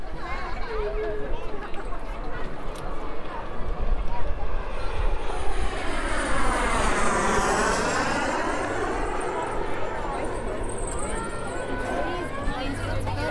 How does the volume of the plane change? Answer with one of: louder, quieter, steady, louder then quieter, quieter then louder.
louder then quieter.